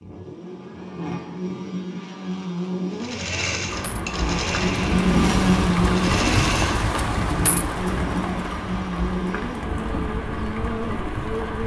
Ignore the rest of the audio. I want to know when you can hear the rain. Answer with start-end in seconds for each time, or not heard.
3.6-11.6.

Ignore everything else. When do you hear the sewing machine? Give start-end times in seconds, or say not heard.
3.0-6.9.